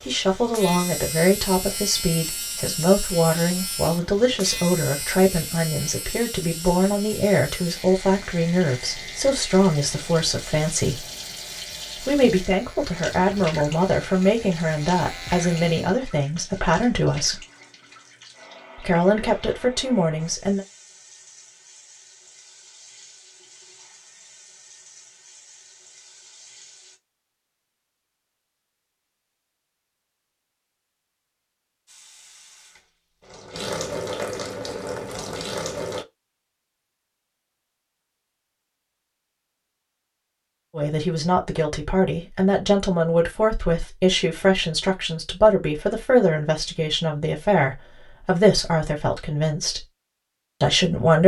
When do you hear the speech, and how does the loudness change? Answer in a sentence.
The speech can be heard from 0.0 to 11.1 s, at a steady volume; from 11.9 to 17.4 s, at a steady volume; briefly from 18.8 to 20.6 s; from 40.8 to 49.9 s, at a steady volume; and briefly from 50.6 to 51.2 s.